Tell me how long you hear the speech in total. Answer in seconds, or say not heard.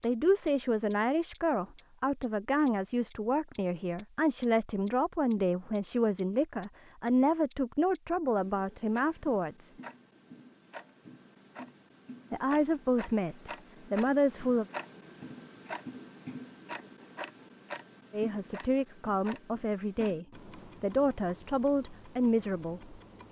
17 s.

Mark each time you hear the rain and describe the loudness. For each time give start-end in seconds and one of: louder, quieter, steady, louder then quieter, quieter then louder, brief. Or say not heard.
not heard.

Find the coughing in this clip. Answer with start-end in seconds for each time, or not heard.
not heard.